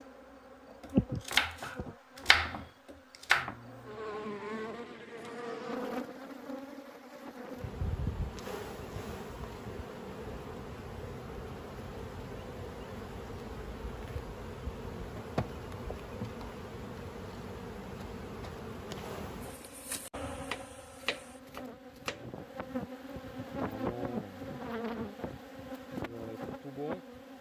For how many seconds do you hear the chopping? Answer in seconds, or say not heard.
4 s.